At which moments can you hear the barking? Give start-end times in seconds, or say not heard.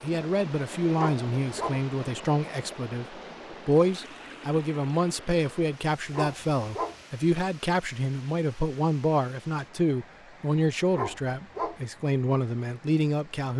0.9-1.8, 6.1-7.0, 10.9-11.8.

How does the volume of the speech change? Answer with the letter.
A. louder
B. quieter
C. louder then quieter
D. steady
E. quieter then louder
D.